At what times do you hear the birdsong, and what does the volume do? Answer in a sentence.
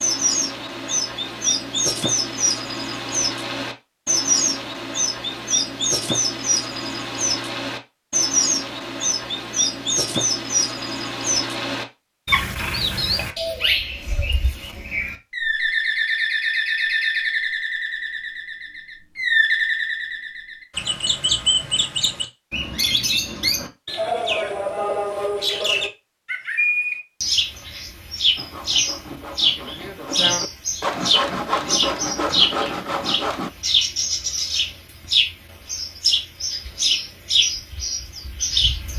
You can hear the birdsong from 0.0 to 38.9 s, at a steady volume.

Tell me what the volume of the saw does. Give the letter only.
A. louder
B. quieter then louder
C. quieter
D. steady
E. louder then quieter
A.